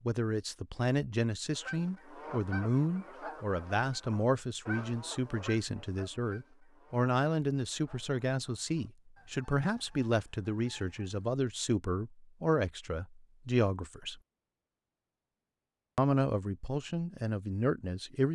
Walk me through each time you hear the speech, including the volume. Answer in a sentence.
You can hear the speech from 0.1 to 14.2 s, at a steady volume; and briefly from 15.9 to 18.2 s.